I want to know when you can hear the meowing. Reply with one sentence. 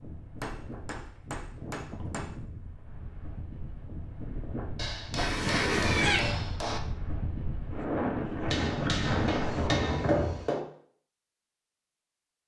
The meowing can be heard from 5.2 to 6.2 s.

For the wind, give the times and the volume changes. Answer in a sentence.
The wind can be heard from 0.0 to 10.4 s, getting louder.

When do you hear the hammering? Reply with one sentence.
The hammering can be heard from 0.4 to 2.4 s, from 4.8 to 6.8 s and from 8.5 to 10.7 s.